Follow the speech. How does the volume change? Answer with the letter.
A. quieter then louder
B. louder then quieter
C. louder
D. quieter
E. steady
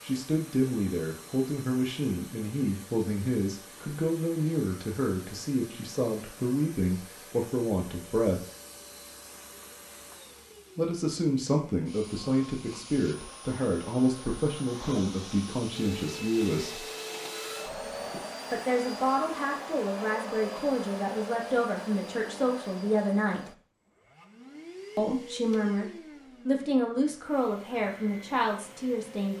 E.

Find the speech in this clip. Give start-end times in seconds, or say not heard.
0.0-8.4, 10.8-16.9, 18.5-23.5, 24.9-29.3.